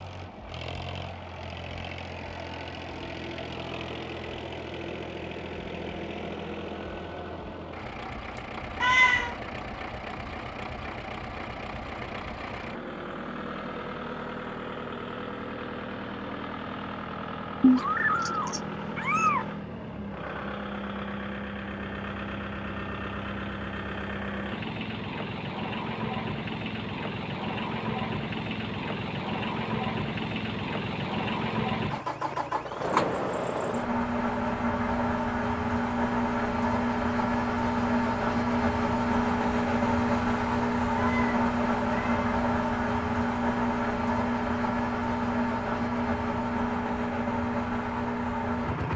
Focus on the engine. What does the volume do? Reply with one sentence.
The volume of the engine goes up.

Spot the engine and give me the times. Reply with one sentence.
You can hear the engine from 0.0 to 48.9 s.